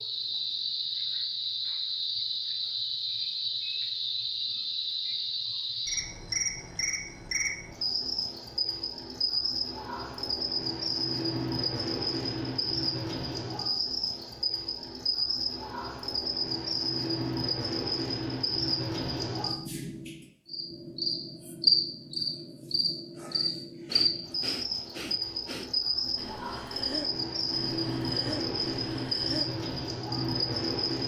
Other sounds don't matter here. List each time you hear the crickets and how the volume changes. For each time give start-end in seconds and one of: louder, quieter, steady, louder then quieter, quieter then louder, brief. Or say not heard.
0.0-31.0 steady.